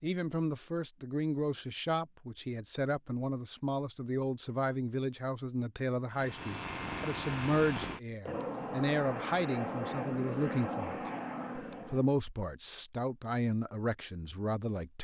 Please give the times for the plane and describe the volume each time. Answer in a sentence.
The plane can be heard from 6.1 to 12.1 s, at a steady volume.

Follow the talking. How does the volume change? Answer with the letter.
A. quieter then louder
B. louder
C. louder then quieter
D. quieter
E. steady
E.